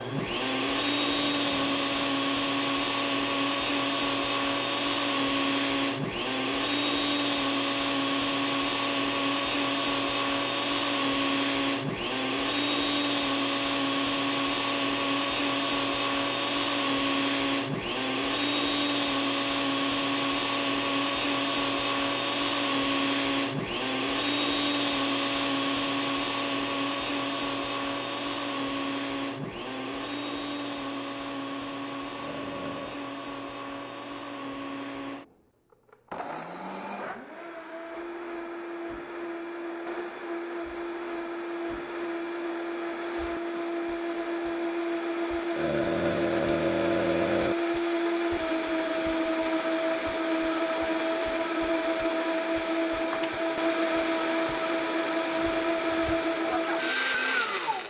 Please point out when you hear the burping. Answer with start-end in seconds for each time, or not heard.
1.1-2.1, 32.1-33.0, 45.5-47.5.